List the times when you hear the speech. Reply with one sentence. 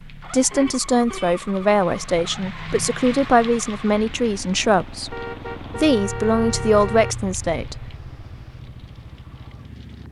You can hear the speech from 0.1 to 7.8 s.